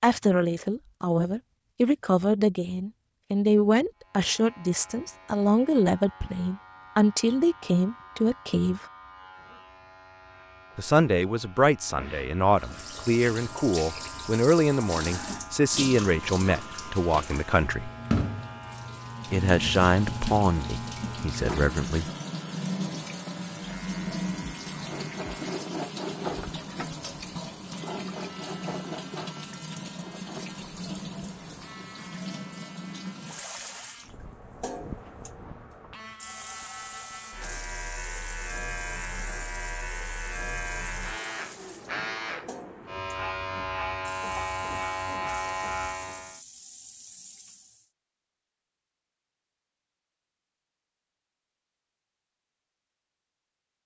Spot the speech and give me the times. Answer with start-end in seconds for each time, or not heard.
0.0-8.8, 10.8-17.9, 19.3-22.1.